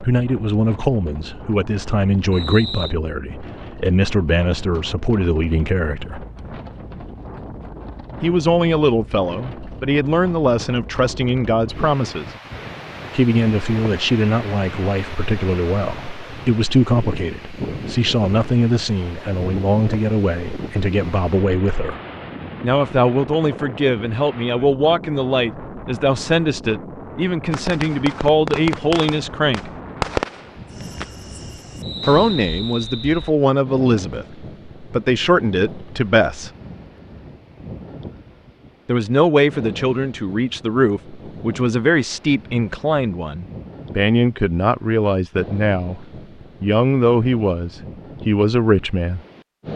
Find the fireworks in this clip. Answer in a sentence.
The fireworks can be heard from 27.5 to 33.4 s.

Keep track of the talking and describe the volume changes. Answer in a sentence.
The loudness of the talking stays about the same.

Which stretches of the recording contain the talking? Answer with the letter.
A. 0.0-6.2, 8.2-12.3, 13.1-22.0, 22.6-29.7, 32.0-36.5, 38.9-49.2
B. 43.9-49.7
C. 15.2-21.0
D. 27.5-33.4
A.